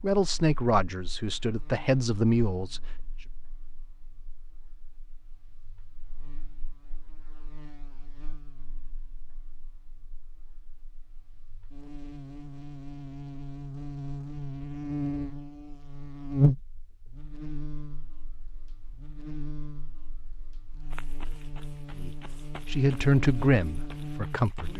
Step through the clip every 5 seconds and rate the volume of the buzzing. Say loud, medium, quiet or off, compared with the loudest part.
quiet, quiet, medium, loud, medium.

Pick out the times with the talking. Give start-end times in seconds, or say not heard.
0.0-2.8, 21.9-24.7.